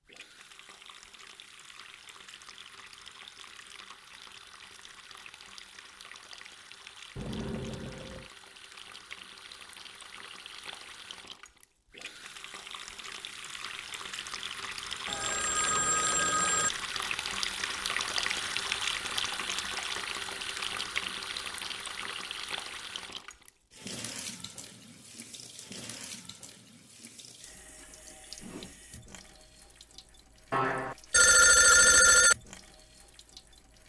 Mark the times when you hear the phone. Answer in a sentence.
You can hear the phone from 7.2 to 8.3 s, from 15.1 to 16.7 s and from 30.5 to 32.4 s.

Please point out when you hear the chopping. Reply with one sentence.
You can't hear the chopping here.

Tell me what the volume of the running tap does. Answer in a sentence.
The loudness of the running tap goes up, then down.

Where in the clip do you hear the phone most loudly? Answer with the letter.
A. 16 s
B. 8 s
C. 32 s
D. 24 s
C.